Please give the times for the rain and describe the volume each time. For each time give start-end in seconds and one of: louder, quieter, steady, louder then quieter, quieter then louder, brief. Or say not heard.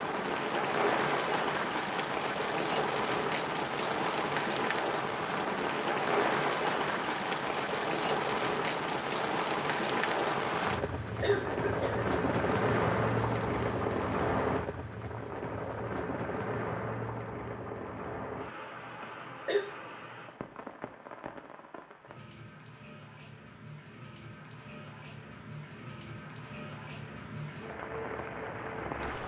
0.0-29.2 quieter.